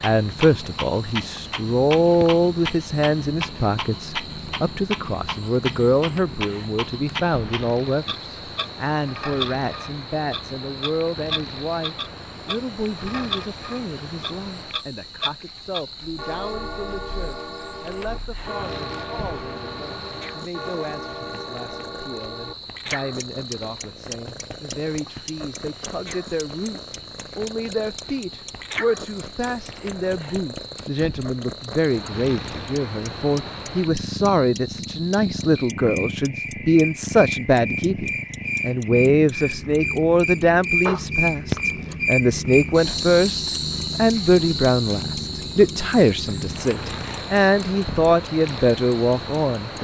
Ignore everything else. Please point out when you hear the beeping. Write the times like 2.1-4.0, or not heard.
not heard.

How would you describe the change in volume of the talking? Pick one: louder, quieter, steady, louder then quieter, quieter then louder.
quieter then louder.